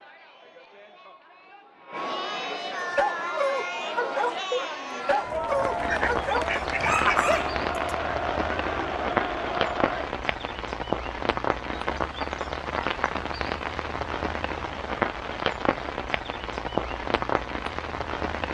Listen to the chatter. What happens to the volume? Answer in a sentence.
The volume of the chatter goes up.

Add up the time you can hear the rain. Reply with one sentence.
You can hear the rain for 13 seconds altogether.